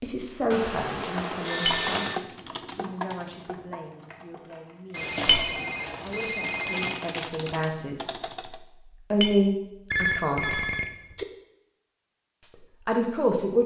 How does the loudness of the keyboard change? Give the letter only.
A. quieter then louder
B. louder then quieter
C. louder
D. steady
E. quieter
A.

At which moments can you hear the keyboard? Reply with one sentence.
You can hear the keyboard from 0.9 to 8.6 s.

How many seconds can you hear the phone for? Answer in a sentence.
You can hear the phone for 5 seconds altogether.